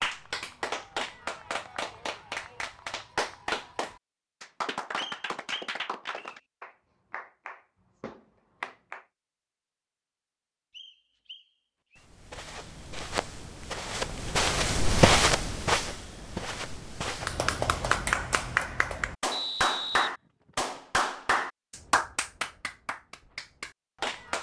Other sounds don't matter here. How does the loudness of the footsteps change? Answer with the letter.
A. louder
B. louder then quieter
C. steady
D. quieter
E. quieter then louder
B.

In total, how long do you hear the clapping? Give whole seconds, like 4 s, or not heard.
16 s.